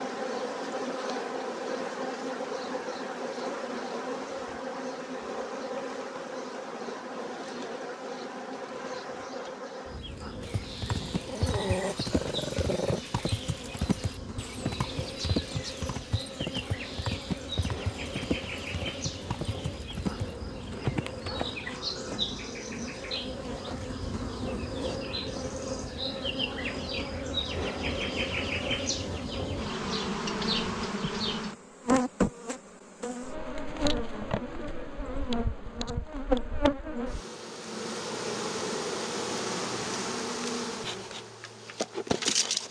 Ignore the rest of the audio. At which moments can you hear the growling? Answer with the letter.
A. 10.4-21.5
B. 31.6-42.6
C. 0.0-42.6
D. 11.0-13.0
D.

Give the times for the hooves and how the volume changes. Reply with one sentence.
The hooves can be heard from 10.4 to 21.5 s, at a steady volume.